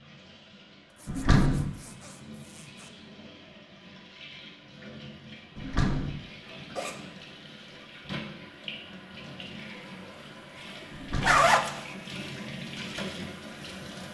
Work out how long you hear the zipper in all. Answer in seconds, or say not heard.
3 s.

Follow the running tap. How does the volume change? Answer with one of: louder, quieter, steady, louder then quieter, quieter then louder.
louder.